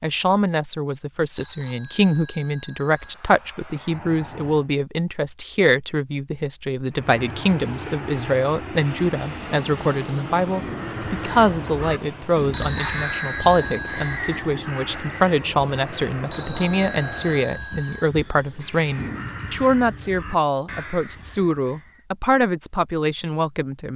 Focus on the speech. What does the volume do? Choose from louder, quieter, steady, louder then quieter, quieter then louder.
steady.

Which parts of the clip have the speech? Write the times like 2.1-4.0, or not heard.
0.0-23.9.